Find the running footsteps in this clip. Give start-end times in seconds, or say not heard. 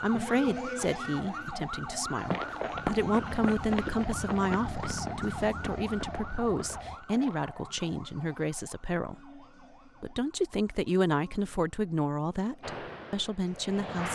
2.3-7.5.